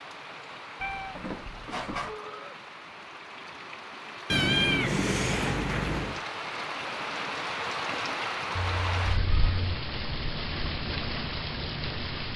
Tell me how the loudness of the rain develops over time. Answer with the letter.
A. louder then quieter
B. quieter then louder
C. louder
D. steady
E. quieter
C.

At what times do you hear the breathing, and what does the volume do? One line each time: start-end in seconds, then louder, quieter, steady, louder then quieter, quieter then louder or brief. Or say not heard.
not heard.